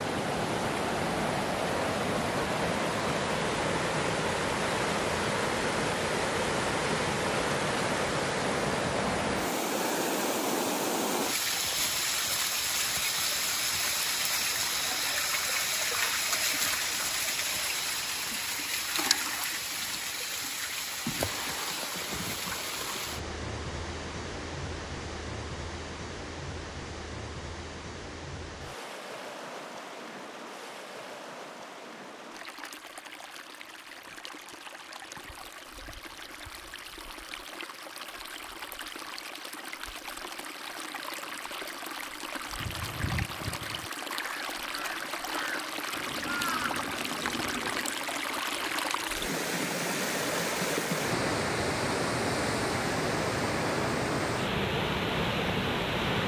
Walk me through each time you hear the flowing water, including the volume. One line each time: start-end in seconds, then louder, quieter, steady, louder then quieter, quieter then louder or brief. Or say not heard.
0.0-56.2 quieter then louder.